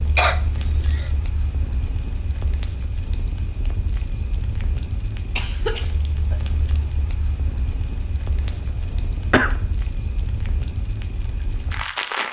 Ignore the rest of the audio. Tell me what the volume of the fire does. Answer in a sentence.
The loudness of the fire stays about the same.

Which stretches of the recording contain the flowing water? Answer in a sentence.
You can't hear the flowing water here.